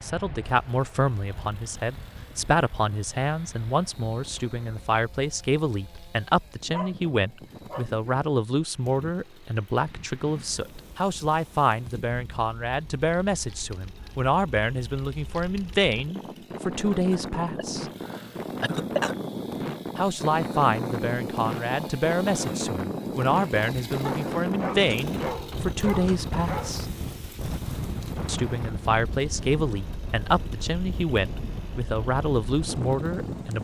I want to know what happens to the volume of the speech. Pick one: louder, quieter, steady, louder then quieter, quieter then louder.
steady.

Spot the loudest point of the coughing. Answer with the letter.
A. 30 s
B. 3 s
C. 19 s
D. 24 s
C.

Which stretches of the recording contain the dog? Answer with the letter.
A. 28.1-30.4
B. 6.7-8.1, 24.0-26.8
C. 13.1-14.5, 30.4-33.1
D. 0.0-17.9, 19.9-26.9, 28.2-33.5
B.